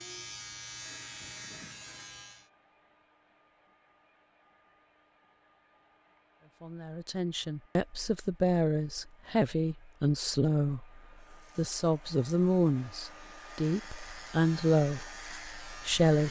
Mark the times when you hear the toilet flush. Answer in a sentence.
You can hear the toilet flush from 0.8 to 2.2 s.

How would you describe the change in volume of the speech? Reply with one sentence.
The loudness of the speech stays about the same.